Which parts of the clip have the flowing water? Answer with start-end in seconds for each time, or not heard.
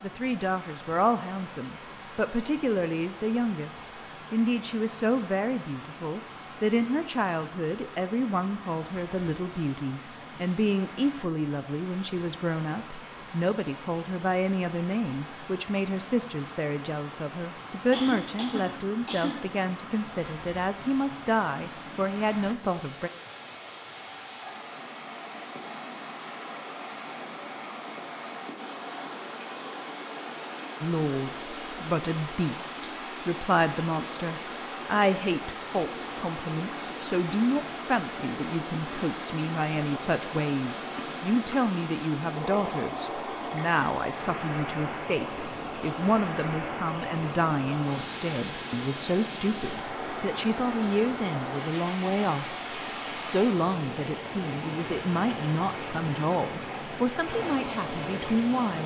0.0-58.8.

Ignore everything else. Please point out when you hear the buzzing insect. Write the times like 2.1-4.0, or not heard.
not heard.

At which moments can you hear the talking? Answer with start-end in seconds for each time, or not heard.
0.0-23.1, 30.8-58.8.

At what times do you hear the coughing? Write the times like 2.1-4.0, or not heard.
17.9-19.4.